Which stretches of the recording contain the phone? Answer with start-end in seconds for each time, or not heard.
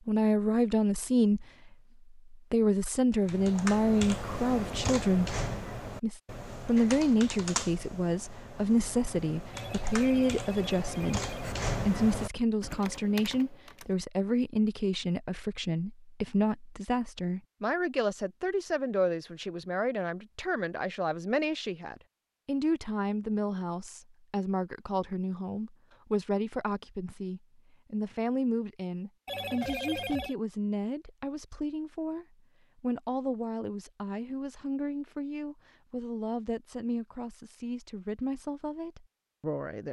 9.5-11.6, 29.2-30.4.